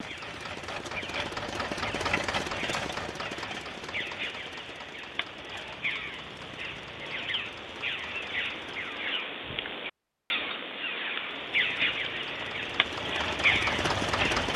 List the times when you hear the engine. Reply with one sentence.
The engine can be heard from 0.0 to 9.3 s and from 11.2 to 14.5 s.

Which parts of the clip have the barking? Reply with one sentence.
The barking can't be heard in this clip.